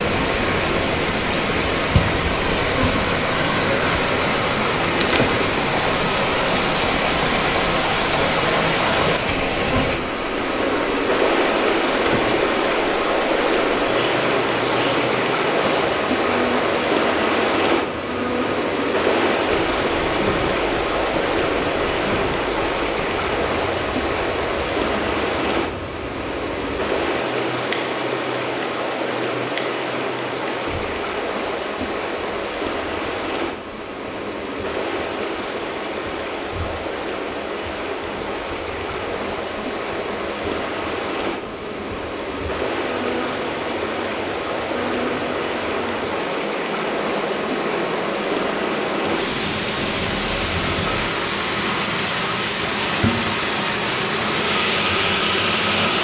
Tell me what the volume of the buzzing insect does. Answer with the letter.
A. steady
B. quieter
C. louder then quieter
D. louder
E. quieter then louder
E.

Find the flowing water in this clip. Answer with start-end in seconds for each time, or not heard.
0.0-55.9.